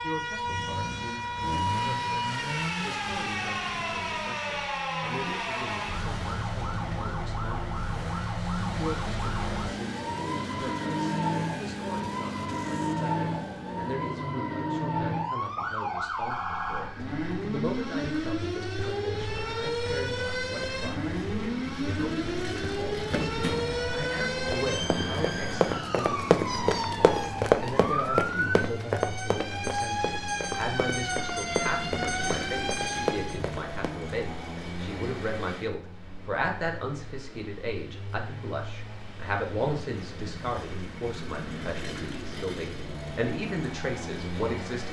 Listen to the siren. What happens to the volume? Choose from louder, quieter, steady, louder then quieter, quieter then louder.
steady.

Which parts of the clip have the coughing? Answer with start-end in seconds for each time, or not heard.
not heard.